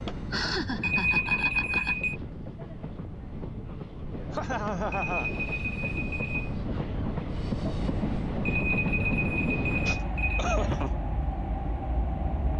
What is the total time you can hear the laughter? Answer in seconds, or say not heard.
4 s.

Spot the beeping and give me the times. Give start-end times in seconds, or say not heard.
0.8-2.1, 4.9-6.5, 8.4-10.6.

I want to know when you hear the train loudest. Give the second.
9 s.